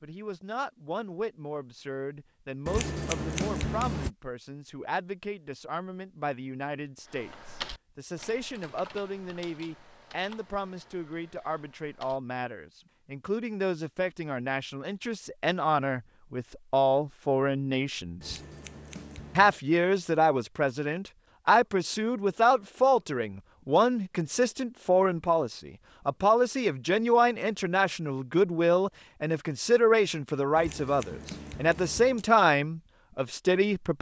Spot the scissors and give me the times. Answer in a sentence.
The scissors can be heard from 2.6 to 4.1 s, from 18.2 to 19.6 s and from 30.6 to 32.2 s.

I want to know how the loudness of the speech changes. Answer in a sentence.
The volume of the speech goes up.